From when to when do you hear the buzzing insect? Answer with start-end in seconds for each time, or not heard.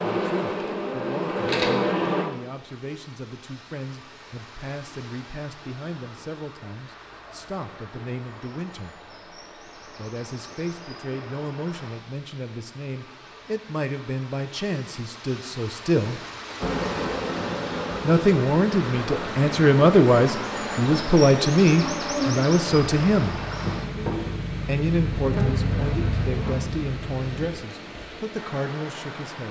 0.0-2.2, 16.6-27.5.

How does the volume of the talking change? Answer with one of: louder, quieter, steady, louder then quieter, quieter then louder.
louder then quieter.